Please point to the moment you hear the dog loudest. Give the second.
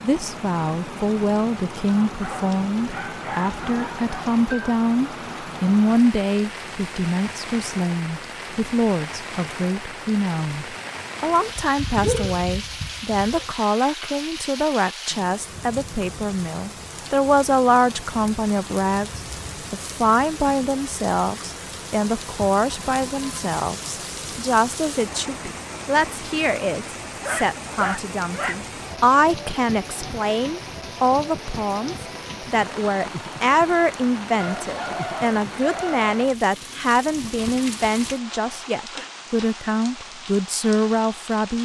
12 s.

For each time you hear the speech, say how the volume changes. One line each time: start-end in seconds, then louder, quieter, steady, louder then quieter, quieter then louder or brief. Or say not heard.
0.0-41.5 steady.